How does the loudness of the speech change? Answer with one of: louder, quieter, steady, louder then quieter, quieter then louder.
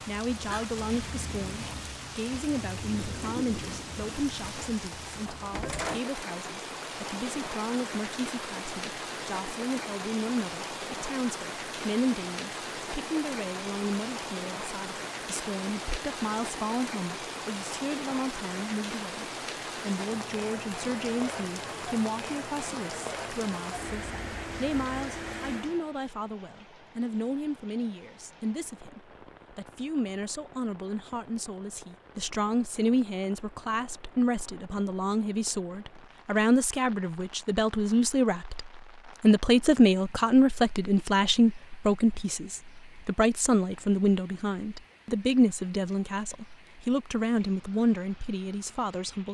louder.